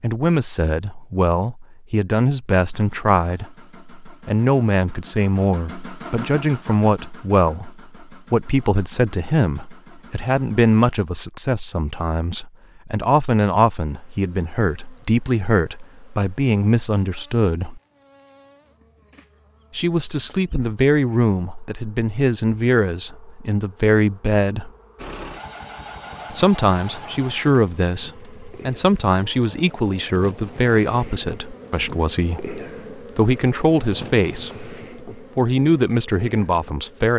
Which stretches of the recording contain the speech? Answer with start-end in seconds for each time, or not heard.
0.0-17.8, 19.8-24.7, 26.3-37.1.